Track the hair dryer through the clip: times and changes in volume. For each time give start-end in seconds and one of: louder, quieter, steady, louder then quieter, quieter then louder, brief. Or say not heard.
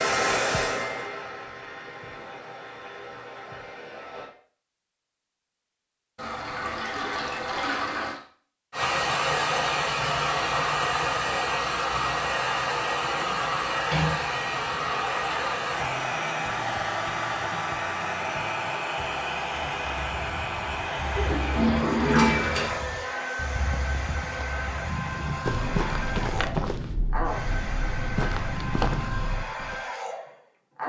0.0-4.3 quieter
8.7-30.8 quieter.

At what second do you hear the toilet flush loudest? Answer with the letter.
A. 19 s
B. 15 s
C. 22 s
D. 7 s
C.